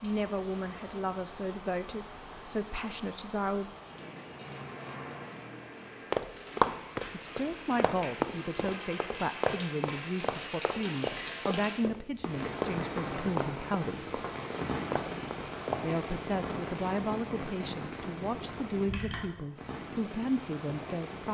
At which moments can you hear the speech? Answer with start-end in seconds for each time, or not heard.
0.0-3.8, 7.1-14.2, 15.8-21.2.